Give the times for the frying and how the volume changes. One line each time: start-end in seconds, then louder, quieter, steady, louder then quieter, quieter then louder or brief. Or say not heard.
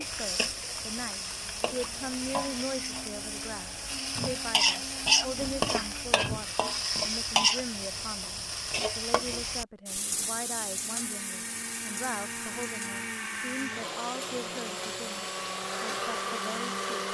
0.0-17.0 louder then quieter.